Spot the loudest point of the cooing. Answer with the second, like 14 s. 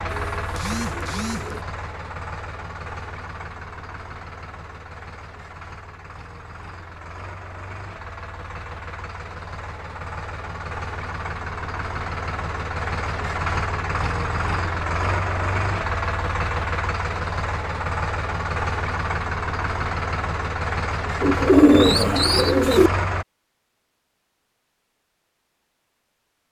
22 s.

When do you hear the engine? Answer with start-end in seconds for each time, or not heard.
0.0-23.2.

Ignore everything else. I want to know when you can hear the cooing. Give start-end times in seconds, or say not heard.
0.1-1.6, 21.2-22.9.